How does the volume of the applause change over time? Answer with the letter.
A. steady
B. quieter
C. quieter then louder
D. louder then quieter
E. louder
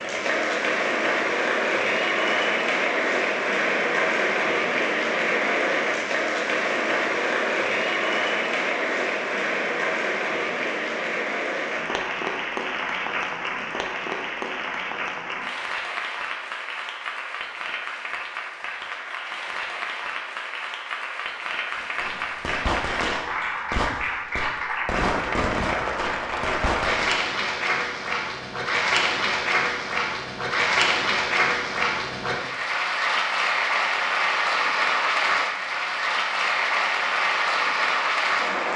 C.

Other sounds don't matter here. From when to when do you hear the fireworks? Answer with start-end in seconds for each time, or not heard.
21.8-27.2.